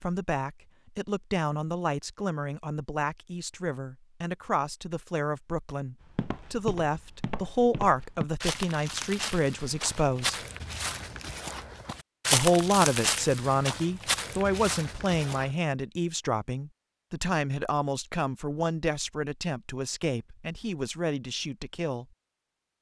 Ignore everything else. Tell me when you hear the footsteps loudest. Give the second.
12 s.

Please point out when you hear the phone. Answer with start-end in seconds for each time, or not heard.
not heard.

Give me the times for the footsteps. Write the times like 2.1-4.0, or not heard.
6.0-15.5.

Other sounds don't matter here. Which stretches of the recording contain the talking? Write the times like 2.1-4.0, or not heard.
0.0-10.3, 12.3-22.1.